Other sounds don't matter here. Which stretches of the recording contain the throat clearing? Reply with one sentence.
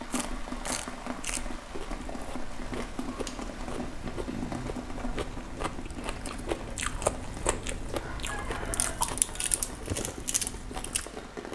The throat clearing can be heard from 3.8 to 4.8 s.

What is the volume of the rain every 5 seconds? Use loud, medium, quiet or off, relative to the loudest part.
loud, medium, loud.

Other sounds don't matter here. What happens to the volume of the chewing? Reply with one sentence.
The volume of the chewing goes up.